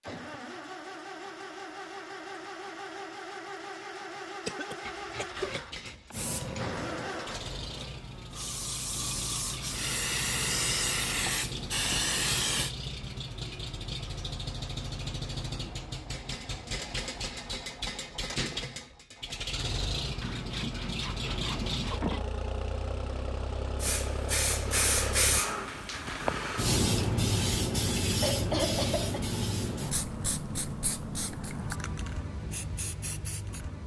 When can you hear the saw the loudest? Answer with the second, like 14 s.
22 s.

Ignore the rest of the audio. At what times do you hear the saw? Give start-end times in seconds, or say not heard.
4.8-6.8, 20.2-22.2.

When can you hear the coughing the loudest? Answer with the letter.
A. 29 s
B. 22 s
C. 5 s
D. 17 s
A.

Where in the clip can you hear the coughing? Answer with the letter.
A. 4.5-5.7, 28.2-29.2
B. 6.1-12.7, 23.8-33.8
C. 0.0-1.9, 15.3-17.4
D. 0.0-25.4
A.